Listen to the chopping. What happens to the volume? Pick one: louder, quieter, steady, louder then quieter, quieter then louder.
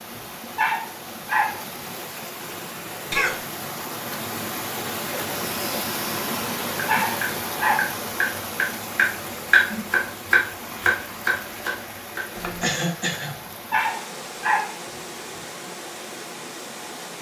louder then quieter.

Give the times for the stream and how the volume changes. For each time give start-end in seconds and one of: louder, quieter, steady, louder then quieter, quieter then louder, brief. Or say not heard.
0.0-17.1 louder then quieter.